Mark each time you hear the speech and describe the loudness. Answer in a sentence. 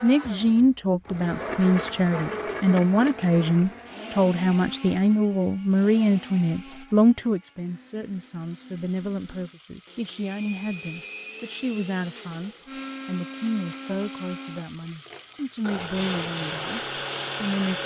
You can hear the speech from 0.0 to 16.8 s, getting quieter; and briefly from 17.4 to 17.8 s.